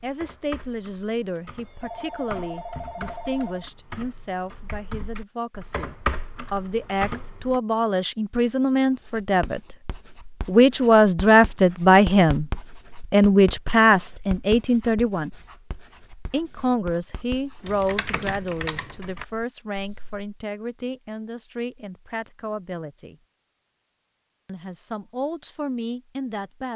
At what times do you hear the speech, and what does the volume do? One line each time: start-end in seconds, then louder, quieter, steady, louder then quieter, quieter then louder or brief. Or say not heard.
0.0-12.4 louder
13.1-15.3 brief
16.3-23.1 quieter
24.4-26.7 brief.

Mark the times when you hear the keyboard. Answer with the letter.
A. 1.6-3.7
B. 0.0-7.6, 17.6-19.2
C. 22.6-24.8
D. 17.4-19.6
B.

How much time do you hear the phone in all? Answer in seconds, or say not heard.
2 s.